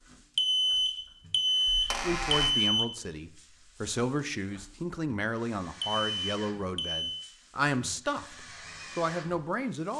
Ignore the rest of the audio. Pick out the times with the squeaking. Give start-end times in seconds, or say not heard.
1.6-2.5.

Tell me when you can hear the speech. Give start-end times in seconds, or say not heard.
2.0-9.9.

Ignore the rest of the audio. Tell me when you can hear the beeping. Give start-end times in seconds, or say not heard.
0.3-3.0, 5.8-7.3.